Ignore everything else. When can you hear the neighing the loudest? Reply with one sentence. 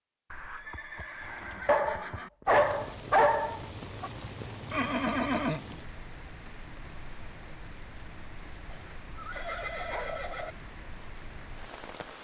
The loudest moment of the neighing is at 5 seconds.